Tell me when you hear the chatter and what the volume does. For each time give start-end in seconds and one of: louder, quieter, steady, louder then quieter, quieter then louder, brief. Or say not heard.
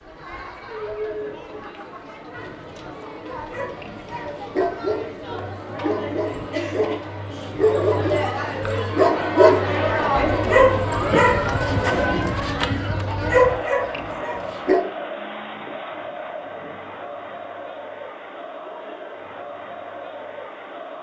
0.0-20.9 louder then quieter.